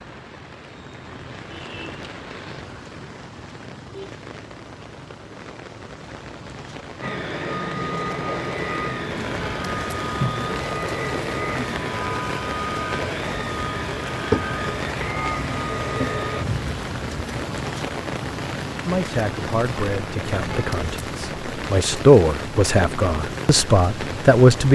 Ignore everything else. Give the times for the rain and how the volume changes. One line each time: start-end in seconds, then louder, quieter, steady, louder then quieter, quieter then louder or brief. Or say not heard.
0.0-24.7 louder.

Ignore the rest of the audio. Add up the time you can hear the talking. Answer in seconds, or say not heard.
6 s.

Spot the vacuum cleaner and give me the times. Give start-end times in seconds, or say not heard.
7.0-16.4.